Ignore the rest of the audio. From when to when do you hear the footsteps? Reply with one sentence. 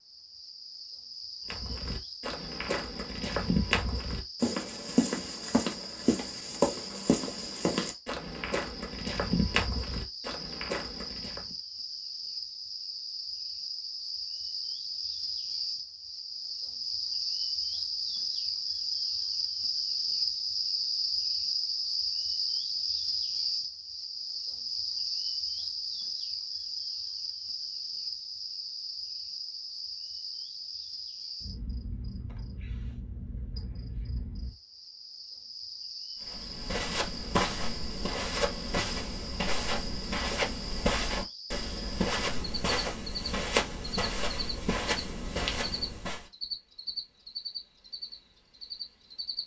You can hear the footsteps from 1.4 to 11.6 s and from 36.2 to 46.2 s.